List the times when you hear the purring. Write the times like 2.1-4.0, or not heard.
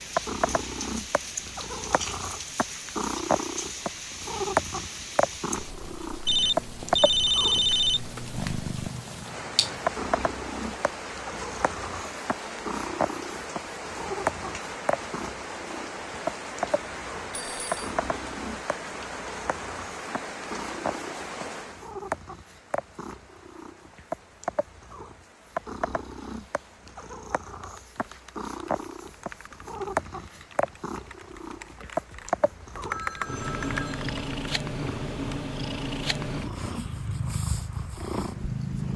0.1-38.9.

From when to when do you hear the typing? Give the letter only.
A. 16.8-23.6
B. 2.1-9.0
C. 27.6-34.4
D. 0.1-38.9
C.